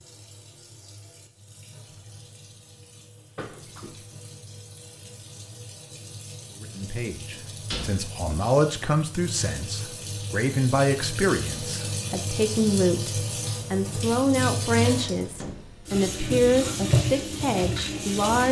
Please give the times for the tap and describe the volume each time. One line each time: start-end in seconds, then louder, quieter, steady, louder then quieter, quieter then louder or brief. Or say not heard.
0.0-18.4 louder.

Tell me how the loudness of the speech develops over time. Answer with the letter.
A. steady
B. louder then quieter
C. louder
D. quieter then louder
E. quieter
A.